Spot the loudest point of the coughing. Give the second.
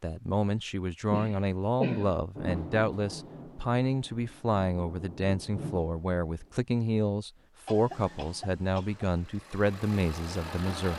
2 s.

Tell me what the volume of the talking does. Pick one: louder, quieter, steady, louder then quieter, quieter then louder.
steady.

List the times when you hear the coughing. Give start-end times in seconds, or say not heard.
1.1-2.1, 7.7-9.1.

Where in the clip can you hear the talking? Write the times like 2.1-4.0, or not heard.
0.0-10.9.